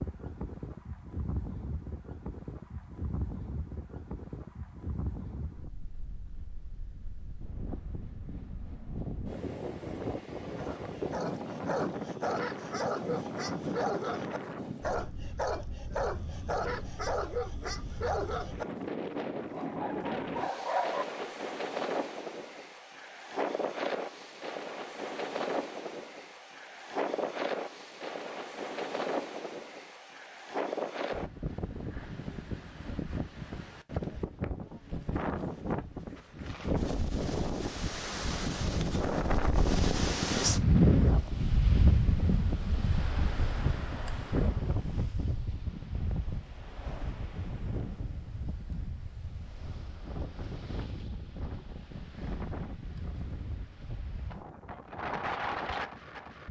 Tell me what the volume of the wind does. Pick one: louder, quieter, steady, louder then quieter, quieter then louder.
louder then quieter.